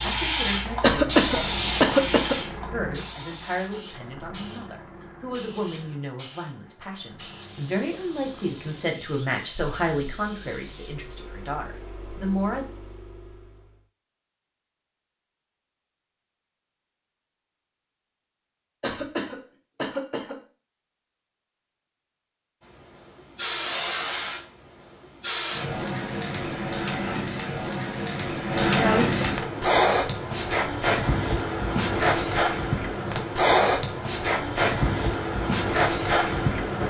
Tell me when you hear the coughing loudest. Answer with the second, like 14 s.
1 s.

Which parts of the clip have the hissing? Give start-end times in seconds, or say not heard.
0.0-10.9, 22.6-36.8.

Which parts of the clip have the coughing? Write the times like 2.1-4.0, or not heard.
0.8-2.4, 18.8-20.4.